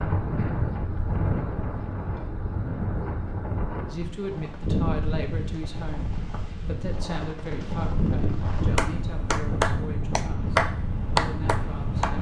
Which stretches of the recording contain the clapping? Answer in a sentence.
The clapping can be heard from 8.8 to 12.1 s.